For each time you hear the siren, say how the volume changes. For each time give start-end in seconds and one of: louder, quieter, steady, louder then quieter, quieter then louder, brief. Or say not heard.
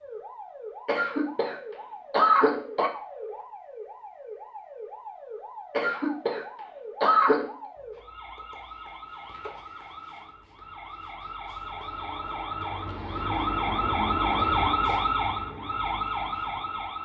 0.0-17.0 louder.